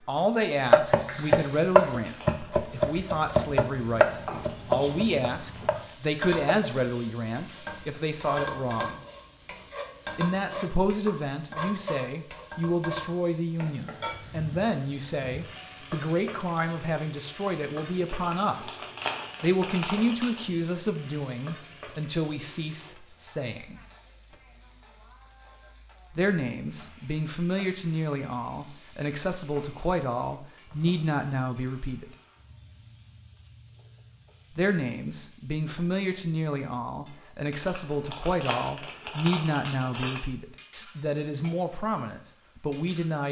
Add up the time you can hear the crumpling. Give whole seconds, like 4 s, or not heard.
6 s.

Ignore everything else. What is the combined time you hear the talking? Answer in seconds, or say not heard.
37 s.